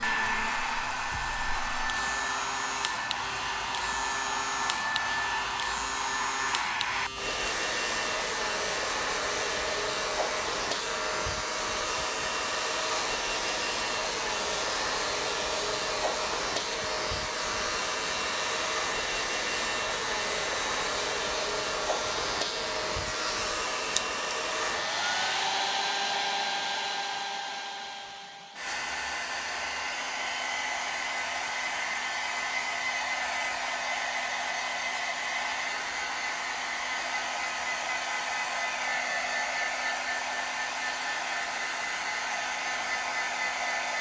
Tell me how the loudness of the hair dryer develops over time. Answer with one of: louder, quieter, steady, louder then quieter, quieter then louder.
steady.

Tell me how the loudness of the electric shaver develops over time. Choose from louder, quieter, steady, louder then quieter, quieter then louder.
steady.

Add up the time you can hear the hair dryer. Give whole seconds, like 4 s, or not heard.
44 s.